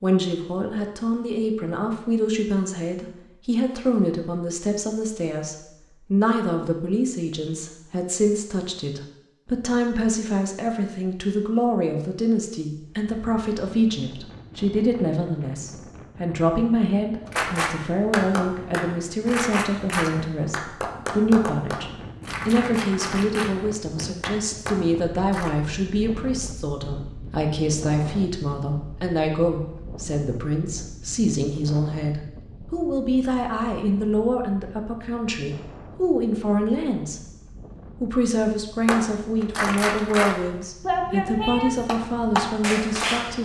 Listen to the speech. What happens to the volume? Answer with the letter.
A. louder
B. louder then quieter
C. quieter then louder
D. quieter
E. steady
E.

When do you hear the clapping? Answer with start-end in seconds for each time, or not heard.
17.3-25.6, 38.9-43.4.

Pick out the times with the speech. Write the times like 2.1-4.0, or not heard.
0.0-37.2, 38.0-43.4.